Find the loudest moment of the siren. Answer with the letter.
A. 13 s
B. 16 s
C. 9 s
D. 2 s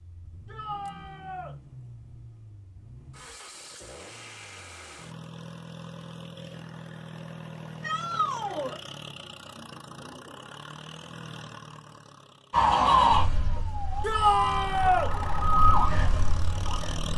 A.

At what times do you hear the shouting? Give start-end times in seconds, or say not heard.
0.5-1.5, 7.8-8.8, 14.0-15.1.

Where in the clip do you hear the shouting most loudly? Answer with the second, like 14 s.
14 s.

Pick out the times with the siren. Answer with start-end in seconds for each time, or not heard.
12.5-17.1.